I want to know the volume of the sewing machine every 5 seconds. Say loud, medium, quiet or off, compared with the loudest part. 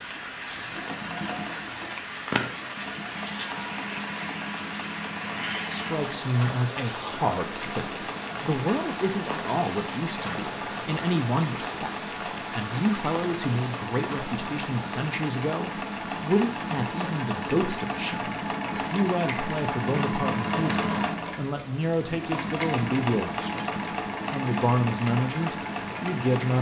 medium, medium, medium, loud, loud, loud.